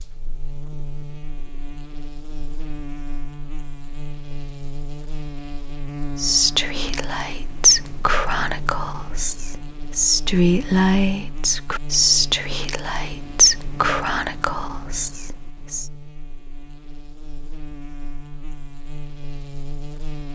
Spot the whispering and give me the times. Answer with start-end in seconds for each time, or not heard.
6.2-15.8.